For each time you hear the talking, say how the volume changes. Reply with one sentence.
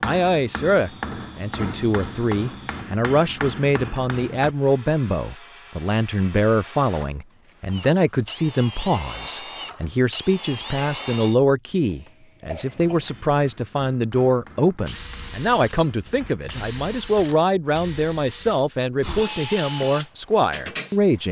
You can hear the talking from 0.0 to 21.2 s, at a steady volume.